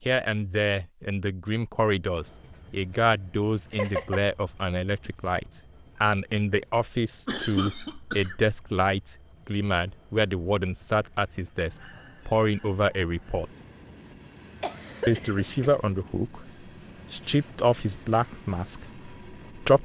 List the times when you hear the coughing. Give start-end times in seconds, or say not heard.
3.7-4.2, 7.2-8.6, 14.6-15.8.